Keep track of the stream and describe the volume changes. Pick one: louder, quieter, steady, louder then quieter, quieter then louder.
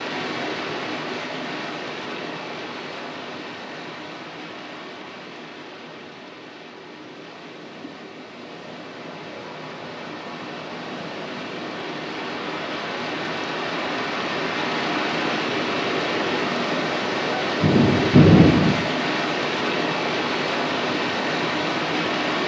quieter then louder.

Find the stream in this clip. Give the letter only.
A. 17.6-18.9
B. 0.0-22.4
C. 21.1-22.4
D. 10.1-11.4
B.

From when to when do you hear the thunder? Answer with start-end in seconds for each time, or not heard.
17.6-18.9.